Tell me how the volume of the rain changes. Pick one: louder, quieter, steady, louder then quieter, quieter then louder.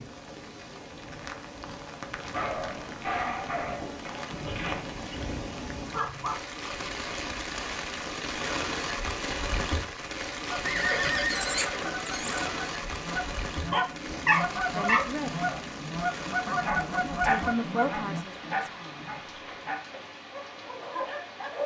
louder then quieter.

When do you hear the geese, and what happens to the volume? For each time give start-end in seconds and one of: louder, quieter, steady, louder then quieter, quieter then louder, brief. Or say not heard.
10.6-18.2 louder.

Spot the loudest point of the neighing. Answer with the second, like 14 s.
11 s.